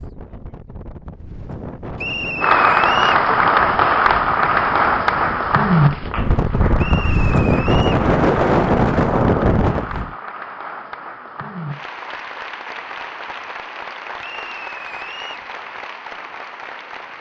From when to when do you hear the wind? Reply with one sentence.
The wind can be heard from 0.0 to 10.2 s.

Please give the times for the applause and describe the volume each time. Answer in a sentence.
You can hear the applause from 2.4 to 17.1 s, getting quieter.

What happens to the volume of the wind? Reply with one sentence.
The loudness of the wind goes up.